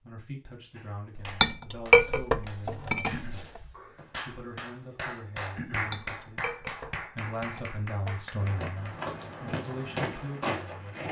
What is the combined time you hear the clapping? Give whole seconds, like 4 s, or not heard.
8 s.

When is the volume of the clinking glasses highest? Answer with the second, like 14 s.
2 s.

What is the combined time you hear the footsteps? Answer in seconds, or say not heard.
5 s.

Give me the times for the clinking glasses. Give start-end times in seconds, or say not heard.
1.1-3.3, 5.8-8.2.